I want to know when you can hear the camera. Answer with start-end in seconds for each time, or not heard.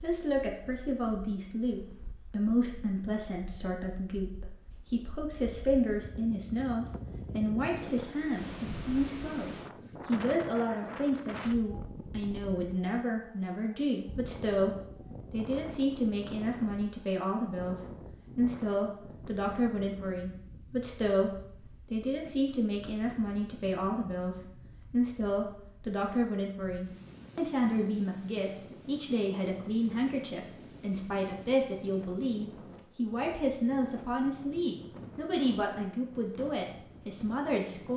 not heard.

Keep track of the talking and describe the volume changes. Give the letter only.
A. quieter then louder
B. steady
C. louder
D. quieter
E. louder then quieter
B.